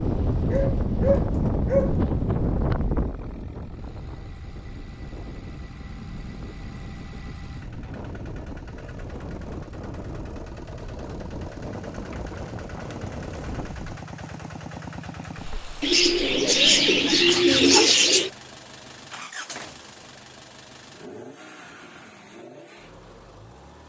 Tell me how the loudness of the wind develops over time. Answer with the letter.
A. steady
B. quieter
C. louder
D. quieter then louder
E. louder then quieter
B.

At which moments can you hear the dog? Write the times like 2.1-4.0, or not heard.
0.5-1.9, 16.2-17.9.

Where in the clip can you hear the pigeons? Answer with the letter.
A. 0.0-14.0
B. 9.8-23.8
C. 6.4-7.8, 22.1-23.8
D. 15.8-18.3
D.